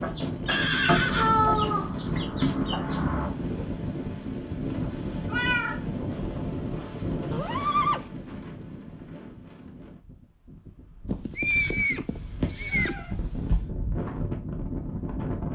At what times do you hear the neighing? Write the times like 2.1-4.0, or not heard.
0.5-1.3, 7.3-8.1, 11.1-13.1.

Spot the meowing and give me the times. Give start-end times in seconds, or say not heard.
1.1-1.9, 5.2-5.8, 12.1-13.7.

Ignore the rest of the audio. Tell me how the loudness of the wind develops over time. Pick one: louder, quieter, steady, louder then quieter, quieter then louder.
quieter then louder.